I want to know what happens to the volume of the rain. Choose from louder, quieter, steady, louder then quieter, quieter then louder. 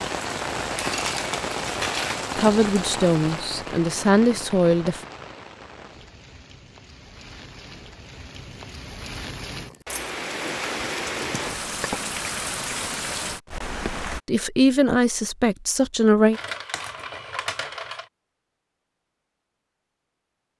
quieter then louder.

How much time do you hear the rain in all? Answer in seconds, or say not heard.
14 s.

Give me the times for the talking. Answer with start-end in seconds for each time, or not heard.
2.4-5.0, 14.2-16.4.